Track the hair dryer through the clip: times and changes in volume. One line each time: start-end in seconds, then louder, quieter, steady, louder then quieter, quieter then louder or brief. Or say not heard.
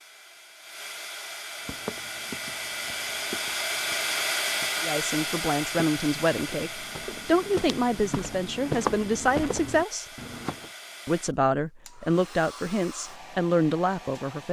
0.0-14.4 louder then quieter.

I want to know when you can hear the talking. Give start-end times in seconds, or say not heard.
4.8-10.1, 11.1-14.4.